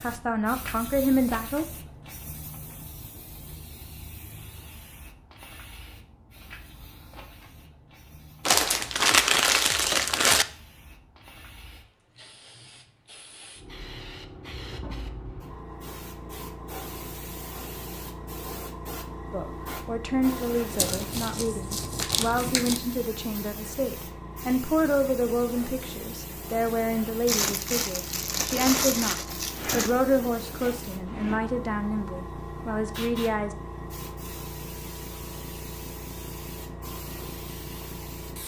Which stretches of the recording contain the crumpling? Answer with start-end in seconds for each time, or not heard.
8.4-10.4, 20.8-22.8, 27.2-29.9.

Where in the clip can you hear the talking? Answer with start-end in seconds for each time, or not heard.
0.0-1.6, 19.3-33.5.